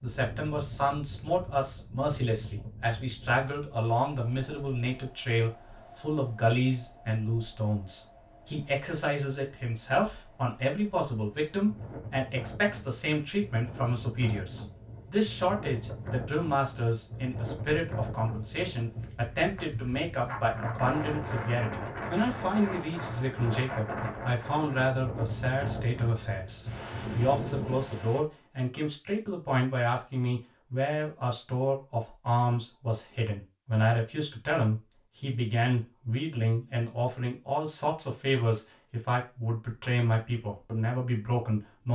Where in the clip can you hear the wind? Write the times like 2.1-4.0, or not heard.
0.1-28.2.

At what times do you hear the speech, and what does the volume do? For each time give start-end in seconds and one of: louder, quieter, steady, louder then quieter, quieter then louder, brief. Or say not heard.
0.0-41.9 steady.